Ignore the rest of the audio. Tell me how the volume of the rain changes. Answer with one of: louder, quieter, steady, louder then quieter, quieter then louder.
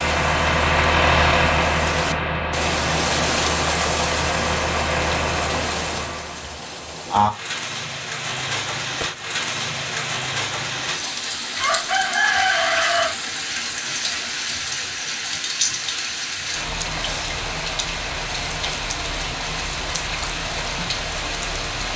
steady.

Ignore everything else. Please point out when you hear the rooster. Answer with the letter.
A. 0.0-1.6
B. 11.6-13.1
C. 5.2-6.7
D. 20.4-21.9
B.